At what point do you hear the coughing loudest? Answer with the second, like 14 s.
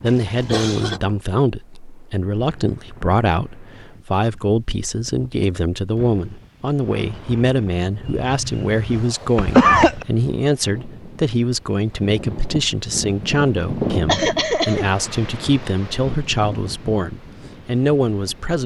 10 s.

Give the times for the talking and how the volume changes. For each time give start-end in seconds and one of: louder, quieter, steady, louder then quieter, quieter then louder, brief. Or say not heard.
0.0-18.6 steady.